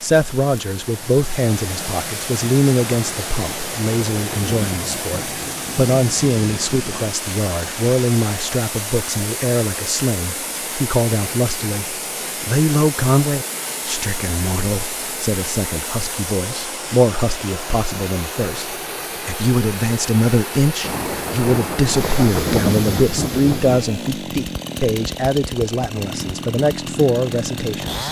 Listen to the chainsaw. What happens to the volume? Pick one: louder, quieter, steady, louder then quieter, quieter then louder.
steady.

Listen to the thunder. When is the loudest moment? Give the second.
23 s.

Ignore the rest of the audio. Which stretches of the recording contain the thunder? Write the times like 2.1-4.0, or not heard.
2.9-7.2, 20.8-23.8.